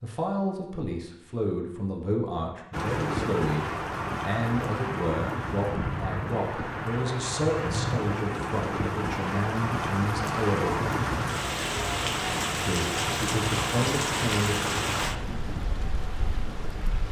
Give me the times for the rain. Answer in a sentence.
You can hear the rain from 2.7 to 17.0 s.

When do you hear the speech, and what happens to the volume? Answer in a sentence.
The speech can be heard from 0.0 to 10.8 s, at a steady volume; and briefly from 12.6 to 14.6 s.